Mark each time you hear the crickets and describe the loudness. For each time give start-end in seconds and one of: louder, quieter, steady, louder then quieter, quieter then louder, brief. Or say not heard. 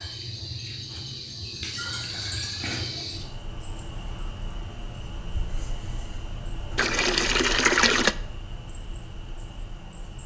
0.0-10.2 quieter.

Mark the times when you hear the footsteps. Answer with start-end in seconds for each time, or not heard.
not heard.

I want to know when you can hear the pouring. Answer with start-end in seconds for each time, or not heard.
1.7-2.9, 6.8-8.2.